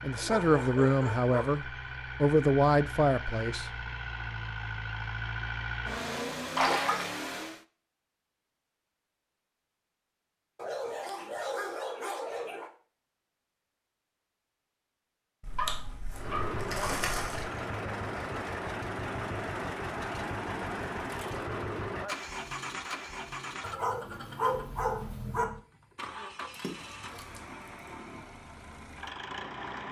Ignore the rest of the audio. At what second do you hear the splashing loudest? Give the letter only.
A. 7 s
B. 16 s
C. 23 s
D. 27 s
A.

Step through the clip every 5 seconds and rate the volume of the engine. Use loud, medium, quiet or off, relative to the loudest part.
loud, loud, off, loud, loud, medium.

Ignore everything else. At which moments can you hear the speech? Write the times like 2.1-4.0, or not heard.
0.0-3.7.